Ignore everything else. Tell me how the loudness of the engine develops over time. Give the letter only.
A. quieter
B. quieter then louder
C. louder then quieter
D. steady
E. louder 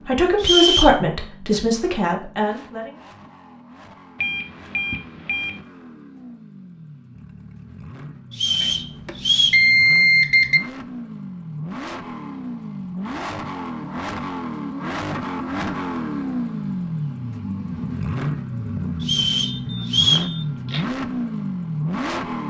E.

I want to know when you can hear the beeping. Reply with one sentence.
You can hear the beeping from 4.2 to 5.6 s, from 8.6 to 10.6 s and from 19.6 to 20.9 s.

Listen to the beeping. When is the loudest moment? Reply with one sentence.
The volume of the beeping peaks at 10 seconds.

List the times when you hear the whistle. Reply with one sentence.
The whistle can be heard from 0.4 to 1.0 s, from 8.3 to 9.7 s and from 19.0 to 20.3 s.